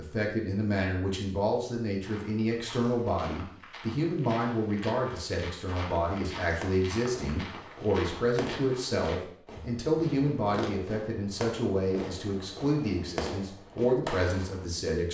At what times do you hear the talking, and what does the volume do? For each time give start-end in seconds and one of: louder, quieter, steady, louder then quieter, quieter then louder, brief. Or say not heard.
0.0-15.0 steady.